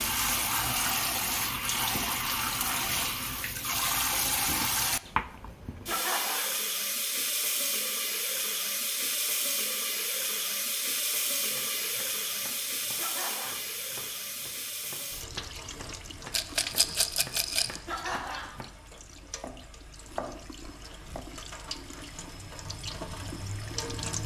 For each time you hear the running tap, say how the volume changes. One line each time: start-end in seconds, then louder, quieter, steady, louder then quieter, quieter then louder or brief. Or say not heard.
0.0-24.2 quieter.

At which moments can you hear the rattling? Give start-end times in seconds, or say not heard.
16.3-17.8.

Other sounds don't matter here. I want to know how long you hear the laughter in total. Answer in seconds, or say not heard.
2 s.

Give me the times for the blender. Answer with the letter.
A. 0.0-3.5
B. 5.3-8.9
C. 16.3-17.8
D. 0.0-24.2
A.